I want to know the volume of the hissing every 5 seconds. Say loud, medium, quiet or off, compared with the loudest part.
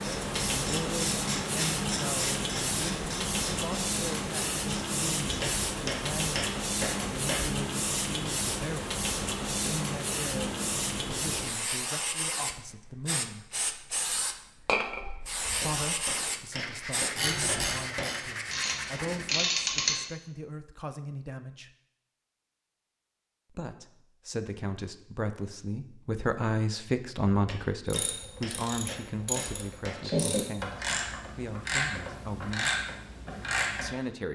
loud, loud, loud, loud, off, off, off.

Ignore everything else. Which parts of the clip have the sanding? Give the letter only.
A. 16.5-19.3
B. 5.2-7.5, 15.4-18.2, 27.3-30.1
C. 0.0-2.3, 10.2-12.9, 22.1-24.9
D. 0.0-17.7
A.